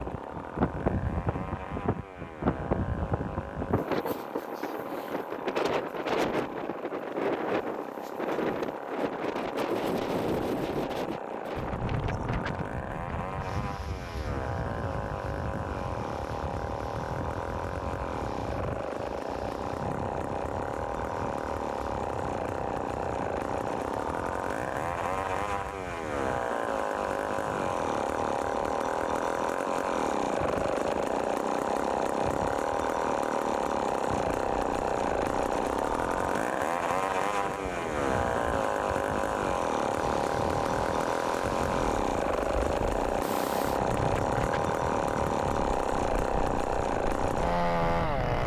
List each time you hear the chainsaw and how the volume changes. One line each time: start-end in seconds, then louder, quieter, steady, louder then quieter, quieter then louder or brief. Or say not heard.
0.0-48.4 louder.